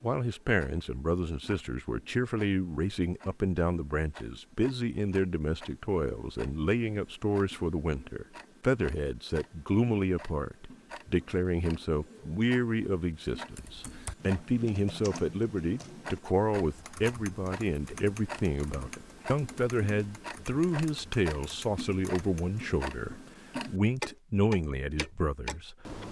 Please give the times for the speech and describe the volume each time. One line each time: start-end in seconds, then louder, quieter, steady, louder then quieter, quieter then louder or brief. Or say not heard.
0.0-26.0 steady.